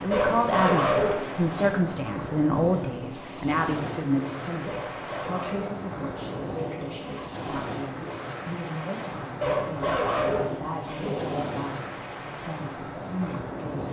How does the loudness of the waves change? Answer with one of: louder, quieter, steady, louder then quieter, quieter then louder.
steady.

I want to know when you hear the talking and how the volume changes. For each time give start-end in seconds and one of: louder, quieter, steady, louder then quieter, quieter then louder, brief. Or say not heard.
0.0-13.7 quieter.